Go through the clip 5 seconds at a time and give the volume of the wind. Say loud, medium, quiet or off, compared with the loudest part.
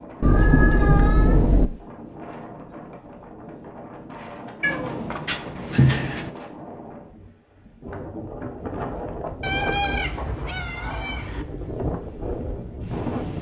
medium, loud, loud.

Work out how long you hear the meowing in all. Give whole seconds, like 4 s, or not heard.
5 s.